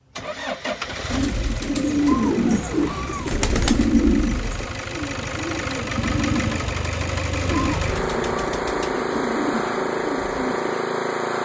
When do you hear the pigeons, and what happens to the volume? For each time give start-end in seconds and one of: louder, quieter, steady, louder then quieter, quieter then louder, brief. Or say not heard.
1.1-10.8 quieter.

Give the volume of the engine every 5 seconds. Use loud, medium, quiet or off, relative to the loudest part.
medium, loud, loud.